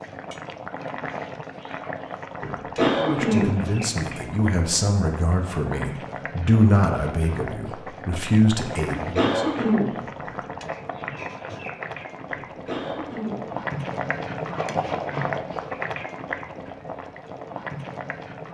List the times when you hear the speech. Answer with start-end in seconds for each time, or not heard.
3.0-9.5.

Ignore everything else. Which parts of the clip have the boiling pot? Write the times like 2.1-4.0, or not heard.
0.0-18.4.